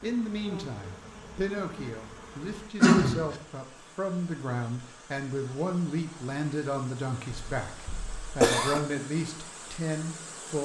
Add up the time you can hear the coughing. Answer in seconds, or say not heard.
2 s.